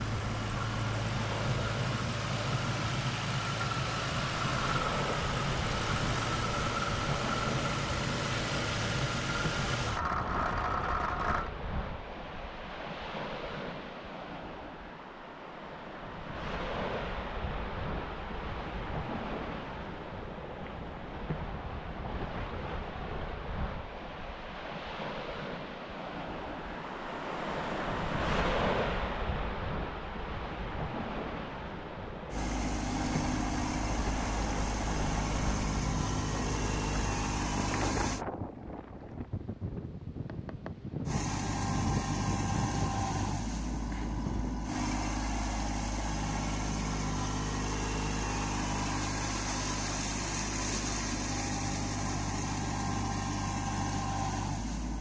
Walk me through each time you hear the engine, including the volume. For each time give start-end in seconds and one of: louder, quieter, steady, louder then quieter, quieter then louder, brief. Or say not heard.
0.0-11.5 steady
32.3-38.2 steady
41.0-54.9 steady.